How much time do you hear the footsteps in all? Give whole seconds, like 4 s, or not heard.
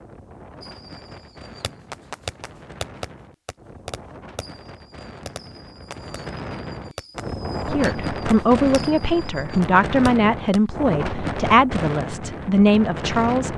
not heard.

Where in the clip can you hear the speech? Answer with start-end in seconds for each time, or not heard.
7.7-13.5.